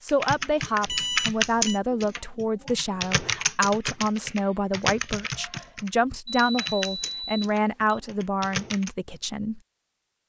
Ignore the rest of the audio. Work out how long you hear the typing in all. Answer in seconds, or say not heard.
9 s.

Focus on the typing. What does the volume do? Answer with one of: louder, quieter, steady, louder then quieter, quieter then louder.
quieter.